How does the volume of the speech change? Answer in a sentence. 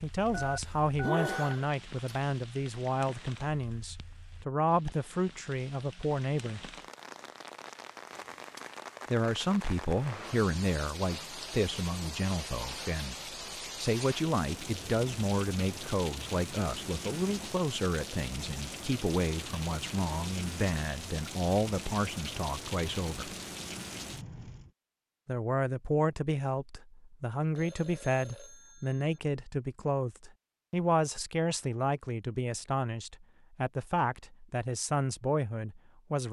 The volume of the speech stays about the same.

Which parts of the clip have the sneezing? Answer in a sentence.
The sneezing can be heard from 0.2 to 2.1 s.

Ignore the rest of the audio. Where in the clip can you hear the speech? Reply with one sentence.
The speech can be heard from 0.0 to 6.7 s, from 9.1 to 23.4 s and from 25.2 to 36.2 s.